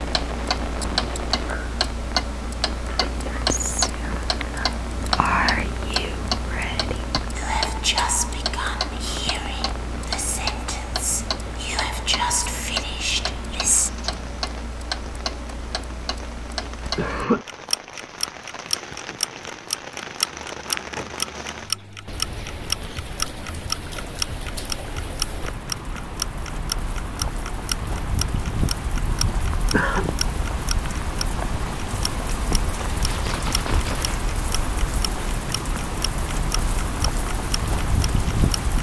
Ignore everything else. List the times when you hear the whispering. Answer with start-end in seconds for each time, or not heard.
3.0-13.9.